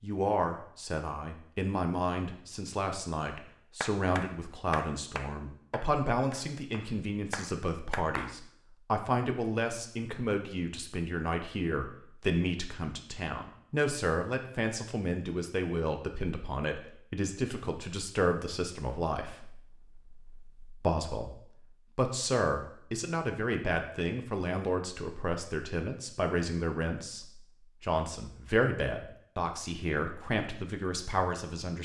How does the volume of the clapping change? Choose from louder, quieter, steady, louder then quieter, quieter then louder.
quieter then louder.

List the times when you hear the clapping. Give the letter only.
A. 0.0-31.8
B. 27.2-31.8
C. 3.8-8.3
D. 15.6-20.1
C.